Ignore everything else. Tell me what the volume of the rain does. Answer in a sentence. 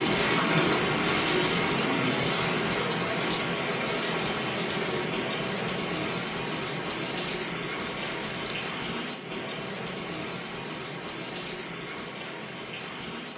The loudness of the rain goes down.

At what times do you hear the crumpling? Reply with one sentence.
The crumpling can be heard from 1.2 to 1.8 s and from 7.8 to 8.7 s.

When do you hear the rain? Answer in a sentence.
You can hear the rain from 0.0 to 13.3 s.